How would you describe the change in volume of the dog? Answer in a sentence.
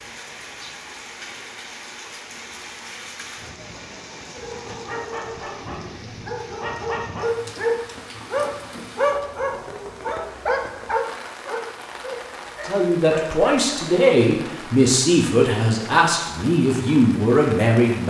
The loudness of the dog goes up, then down.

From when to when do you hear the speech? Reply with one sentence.
You can hear the speech from 12.7 to 18.0 s.